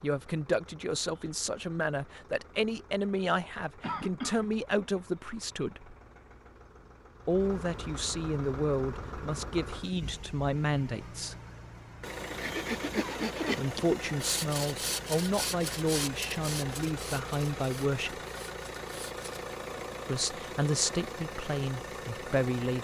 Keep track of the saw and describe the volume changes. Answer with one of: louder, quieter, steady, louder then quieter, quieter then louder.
quieter.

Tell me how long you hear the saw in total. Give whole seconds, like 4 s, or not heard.
7 s.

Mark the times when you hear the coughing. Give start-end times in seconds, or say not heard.
3.8-4.5, 12.9-13.7.